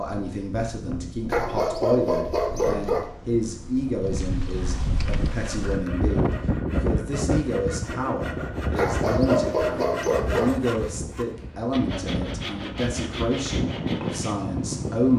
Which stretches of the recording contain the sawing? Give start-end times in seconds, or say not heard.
5.1-14.3.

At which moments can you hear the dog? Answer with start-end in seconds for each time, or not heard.
1.2-3.0, 8.8-10.6.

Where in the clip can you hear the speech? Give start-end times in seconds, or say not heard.
0.0-15.1.